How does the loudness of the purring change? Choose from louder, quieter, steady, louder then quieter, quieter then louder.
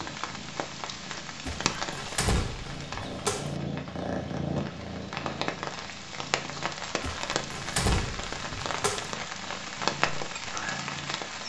louder then quieter.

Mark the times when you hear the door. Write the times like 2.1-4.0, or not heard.
1.4-3.5, 7.0-9.2.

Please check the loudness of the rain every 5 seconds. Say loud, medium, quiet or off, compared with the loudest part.
medium, loud, loud.